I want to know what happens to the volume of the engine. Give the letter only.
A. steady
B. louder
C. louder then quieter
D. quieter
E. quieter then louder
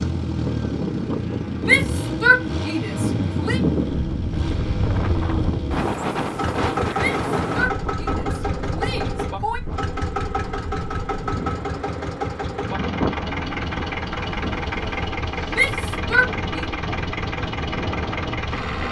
A.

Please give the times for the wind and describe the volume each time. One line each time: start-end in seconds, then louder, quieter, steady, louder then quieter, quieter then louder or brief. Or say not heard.
0.0-18.8 quieter.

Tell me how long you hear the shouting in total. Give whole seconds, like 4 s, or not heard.
6 s.